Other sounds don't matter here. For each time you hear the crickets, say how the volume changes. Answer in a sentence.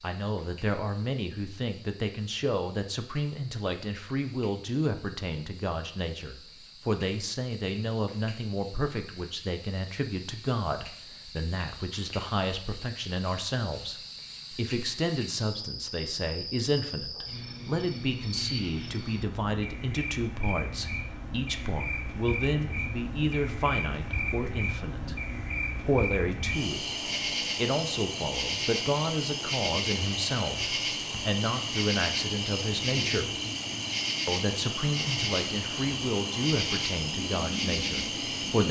The crickets can be heard from 0.0 to 38.6 s, getting louder.